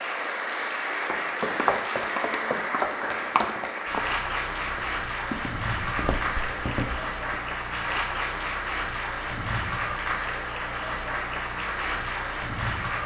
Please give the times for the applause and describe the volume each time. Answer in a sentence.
The applause can be heard from 0.0 to 13.0 s, at a steady volume.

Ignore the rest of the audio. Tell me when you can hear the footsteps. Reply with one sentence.
The footsteps can be heard from 1.0 to 7.4 s.